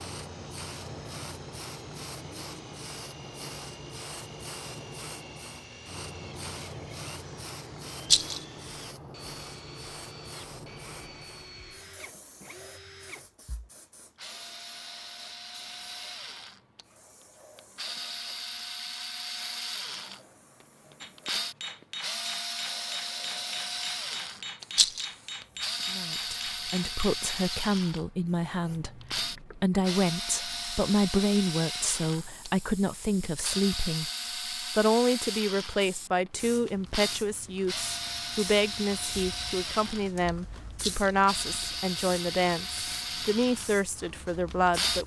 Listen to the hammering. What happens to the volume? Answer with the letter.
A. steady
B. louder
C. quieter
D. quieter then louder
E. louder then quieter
A.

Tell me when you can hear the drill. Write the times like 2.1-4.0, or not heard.
0.0-45.0.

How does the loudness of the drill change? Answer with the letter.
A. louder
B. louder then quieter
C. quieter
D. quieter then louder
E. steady
A.